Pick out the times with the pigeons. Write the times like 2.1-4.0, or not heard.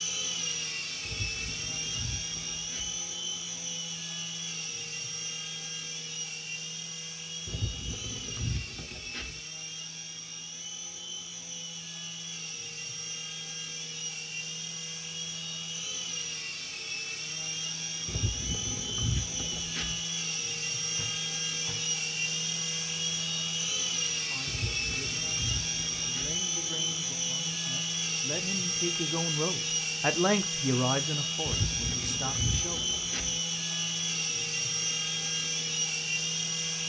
1.0-3.0, 7.5-9.4, 18.1-20.0, 24.4-26.4, 31.4-33.4.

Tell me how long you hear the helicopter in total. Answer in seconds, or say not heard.
37 s.